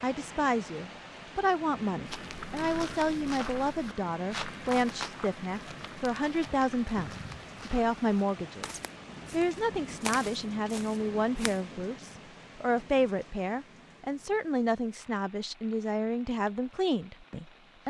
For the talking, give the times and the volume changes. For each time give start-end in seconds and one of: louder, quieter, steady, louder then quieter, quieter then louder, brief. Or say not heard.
0.0-17.8 steady.